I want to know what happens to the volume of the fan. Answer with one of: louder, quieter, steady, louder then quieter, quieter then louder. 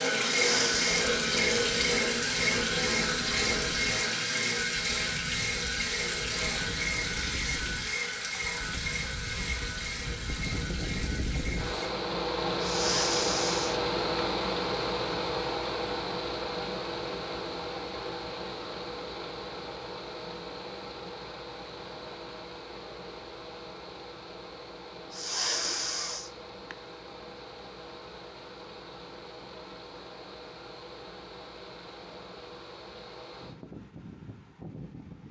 louder then quieter.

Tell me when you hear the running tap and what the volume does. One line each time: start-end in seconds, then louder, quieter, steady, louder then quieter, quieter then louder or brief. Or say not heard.
0.0-11.9 quieter.